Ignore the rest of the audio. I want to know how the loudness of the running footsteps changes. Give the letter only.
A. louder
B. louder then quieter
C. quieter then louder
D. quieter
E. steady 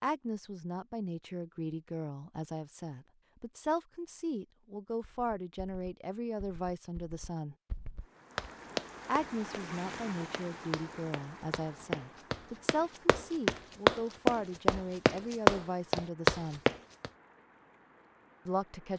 A.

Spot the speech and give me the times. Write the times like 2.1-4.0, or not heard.
0.0-7.5, 9.1-16.6, 18.4-18.9.